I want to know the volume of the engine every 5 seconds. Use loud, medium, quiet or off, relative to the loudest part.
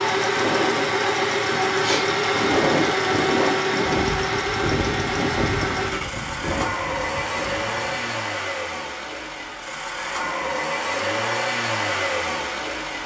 loud, medium, loud.